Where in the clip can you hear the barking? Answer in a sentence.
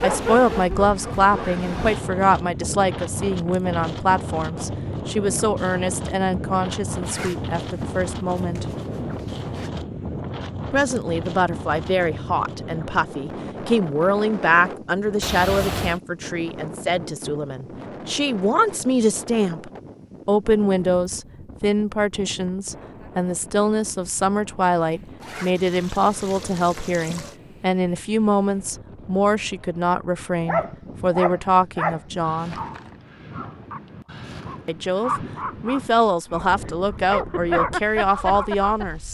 The barking can be heard from 0.0 to 1.6 s and from 30.4 to 39.0 s.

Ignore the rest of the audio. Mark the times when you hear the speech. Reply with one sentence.
The speech can be heard from 0.0 to 8.7 s, from 10.7 to 32.5 s and from 34.6 to 39.1 s.